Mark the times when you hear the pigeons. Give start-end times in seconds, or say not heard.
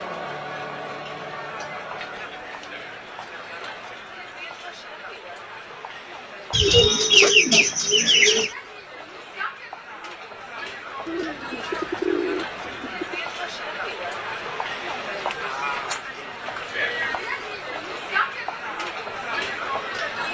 6.5-8.5, 11.1-13.2.